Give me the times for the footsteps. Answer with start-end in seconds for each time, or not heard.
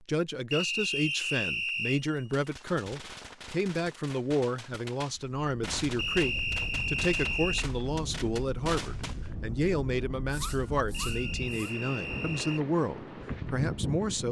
not heard.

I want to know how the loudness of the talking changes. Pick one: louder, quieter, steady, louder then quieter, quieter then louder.
steady.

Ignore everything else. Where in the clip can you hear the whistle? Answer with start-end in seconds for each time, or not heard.
0.5-2.0, 6.0-7.7, 10.9-12.7.